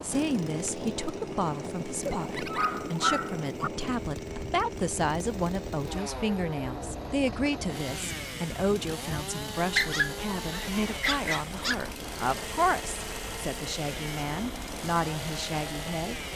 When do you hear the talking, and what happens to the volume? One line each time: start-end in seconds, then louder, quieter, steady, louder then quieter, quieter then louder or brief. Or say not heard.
0.0-16.2 steady.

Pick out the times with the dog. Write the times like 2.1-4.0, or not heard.
2.0-3.7, 9.8-11.8.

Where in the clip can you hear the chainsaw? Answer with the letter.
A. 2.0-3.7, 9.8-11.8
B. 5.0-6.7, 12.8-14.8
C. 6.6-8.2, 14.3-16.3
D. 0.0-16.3
D.